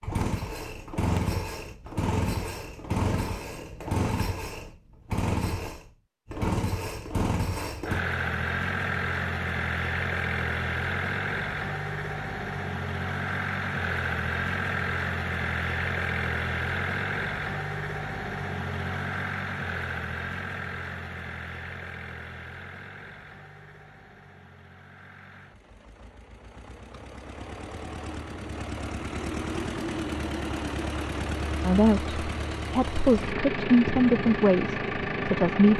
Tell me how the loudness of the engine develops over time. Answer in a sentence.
The volume of the engine goes down, then up.